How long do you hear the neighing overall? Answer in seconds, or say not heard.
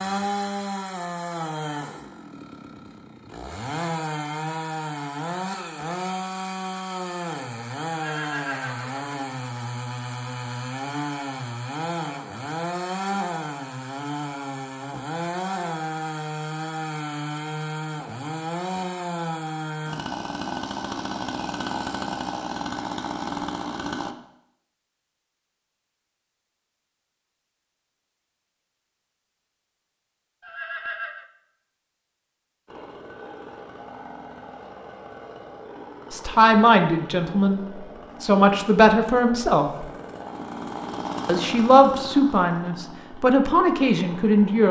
2 s.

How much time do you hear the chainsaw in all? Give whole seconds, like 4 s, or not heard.
36 s.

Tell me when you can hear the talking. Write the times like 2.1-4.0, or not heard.
36.1-37.6, 38.2-39.9, 41.2-44.6.